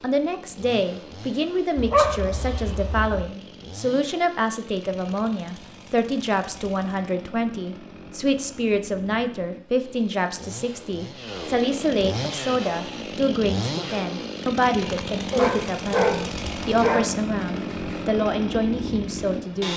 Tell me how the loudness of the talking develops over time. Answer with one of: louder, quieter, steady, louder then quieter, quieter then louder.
steady.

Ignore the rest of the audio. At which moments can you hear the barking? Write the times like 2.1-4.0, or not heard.
1.8-3.2, 15.3-18.0.